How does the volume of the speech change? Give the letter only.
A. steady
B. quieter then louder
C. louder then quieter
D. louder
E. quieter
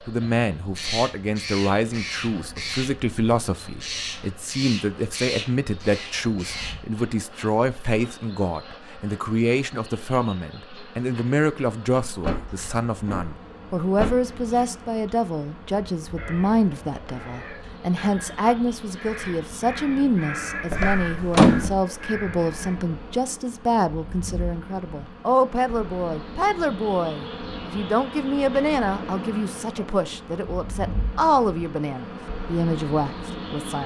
A.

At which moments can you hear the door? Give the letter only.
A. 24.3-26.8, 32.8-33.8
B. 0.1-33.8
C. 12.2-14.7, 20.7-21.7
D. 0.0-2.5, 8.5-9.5
C.